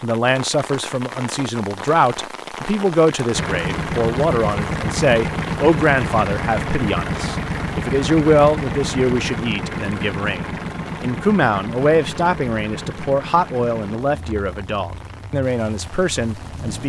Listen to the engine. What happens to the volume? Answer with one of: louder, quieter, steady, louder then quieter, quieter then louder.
quieter.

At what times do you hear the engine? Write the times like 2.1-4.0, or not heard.
3.3-16.8.